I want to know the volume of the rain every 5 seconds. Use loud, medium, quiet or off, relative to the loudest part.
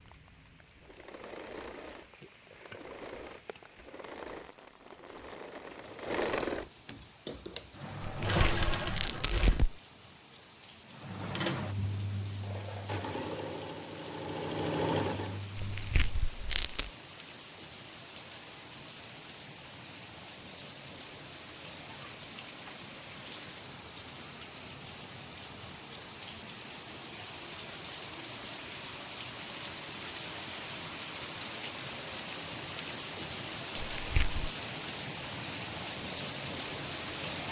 quiet, quiet, quiet, medium, medium, medium, loud, loud.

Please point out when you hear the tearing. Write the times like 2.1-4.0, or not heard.
8.0-9.8, 15.6-16.9, 33.8-34.5.